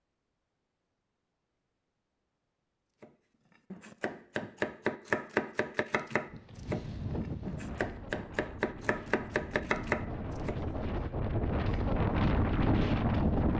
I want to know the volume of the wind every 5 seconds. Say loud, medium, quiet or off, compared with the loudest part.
off, medium, loud.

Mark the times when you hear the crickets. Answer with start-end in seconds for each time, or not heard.
not heard.